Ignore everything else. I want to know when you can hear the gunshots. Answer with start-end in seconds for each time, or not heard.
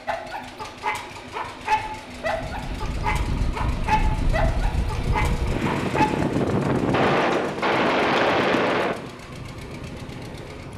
6.9-8.9.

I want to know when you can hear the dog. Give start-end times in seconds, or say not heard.
0.1-6.1.